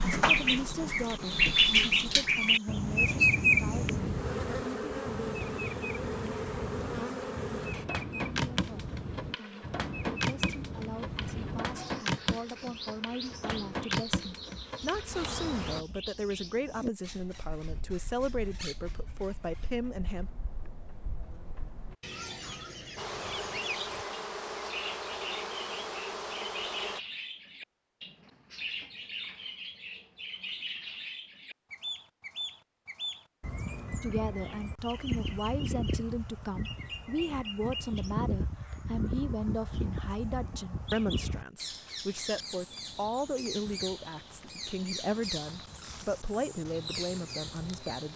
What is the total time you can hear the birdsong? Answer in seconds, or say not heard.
48 s.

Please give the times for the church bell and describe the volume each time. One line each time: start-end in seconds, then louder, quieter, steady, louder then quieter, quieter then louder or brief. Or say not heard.
not heard.